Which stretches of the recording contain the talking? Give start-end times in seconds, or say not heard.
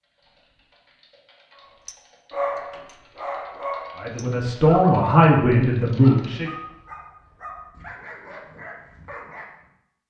4.0-6.5.